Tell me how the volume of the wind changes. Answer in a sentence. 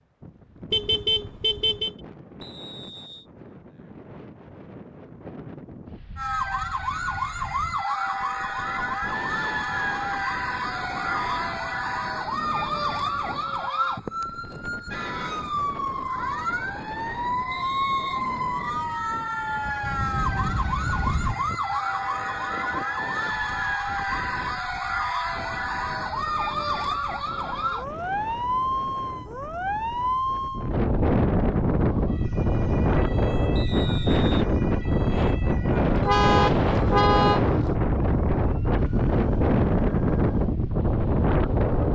The volume of the wind goes up.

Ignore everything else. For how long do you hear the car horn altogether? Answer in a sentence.
You can hear the car horn for 4 seconds altogether.